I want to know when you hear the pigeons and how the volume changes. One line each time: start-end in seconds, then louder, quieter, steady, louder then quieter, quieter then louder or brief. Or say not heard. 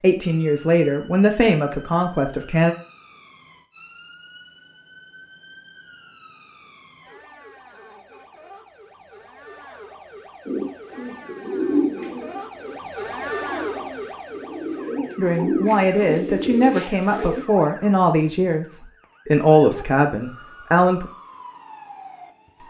10.4-17.4 quieter then louder.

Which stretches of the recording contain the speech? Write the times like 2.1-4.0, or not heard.
0.0-2.8, 15.2-21.1.